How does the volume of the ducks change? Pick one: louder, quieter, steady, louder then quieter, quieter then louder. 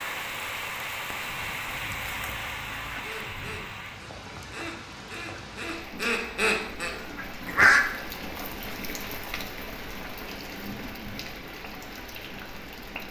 louder.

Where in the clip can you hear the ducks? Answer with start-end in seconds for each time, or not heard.
1.7-7.8.